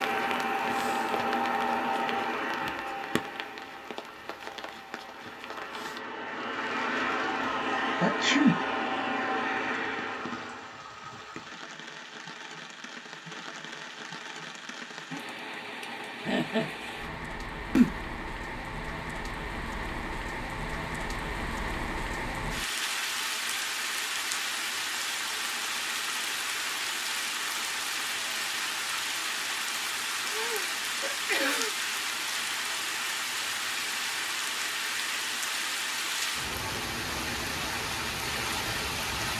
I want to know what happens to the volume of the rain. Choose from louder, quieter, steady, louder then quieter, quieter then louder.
louder.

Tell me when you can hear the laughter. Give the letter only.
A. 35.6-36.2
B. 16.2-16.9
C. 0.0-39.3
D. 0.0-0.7
B.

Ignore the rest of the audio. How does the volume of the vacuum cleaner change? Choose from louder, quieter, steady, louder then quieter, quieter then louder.
quieter then louder.